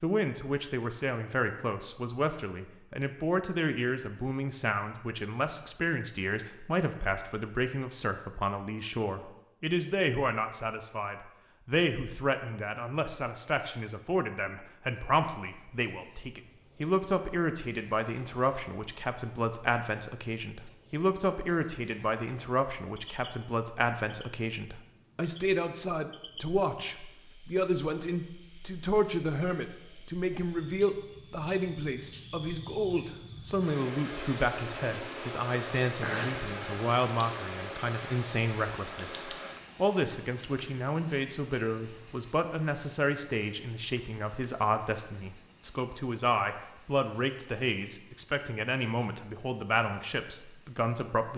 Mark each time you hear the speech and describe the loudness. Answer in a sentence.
You can hear the speech from 0.0 to 51.3 s, at a steady volume.